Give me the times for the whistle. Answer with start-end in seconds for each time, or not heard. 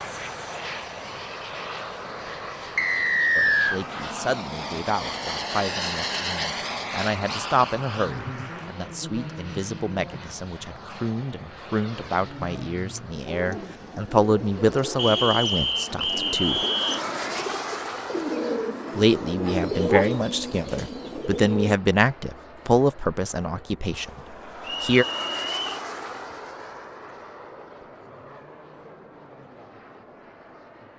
2.8-3.8, 14.9-17.0, 24.6-25.9.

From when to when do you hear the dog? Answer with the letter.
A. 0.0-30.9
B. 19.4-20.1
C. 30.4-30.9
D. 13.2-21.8
B.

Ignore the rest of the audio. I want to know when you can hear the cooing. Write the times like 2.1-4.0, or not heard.
13.2-21.8.